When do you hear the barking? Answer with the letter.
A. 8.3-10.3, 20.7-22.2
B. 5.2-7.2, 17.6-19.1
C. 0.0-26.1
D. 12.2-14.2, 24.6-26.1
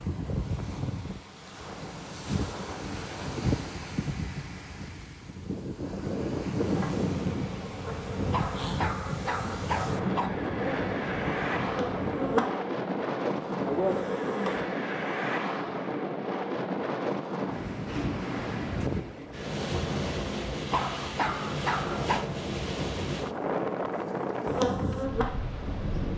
A.